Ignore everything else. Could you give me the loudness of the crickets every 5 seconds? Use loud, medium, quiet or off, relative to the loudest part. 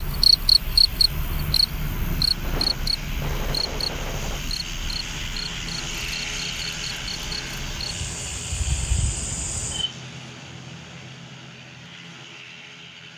loud, medium, off.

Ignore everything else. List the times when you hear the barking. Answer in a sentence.
The barking can't be heard in this clip.